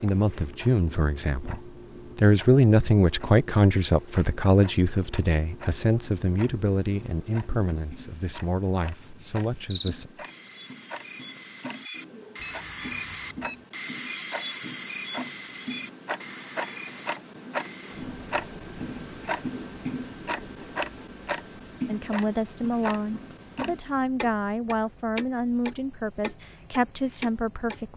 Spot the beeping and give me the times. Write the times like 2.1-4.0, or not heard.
12.3-13.7.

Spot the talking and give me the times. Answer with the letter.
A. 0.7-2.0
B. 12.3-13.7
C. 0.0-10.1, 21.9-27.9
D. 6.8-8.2
C.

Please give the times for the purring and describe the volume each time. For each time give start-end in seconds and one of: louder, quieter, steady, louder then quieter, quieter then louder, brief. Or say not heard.
not heard.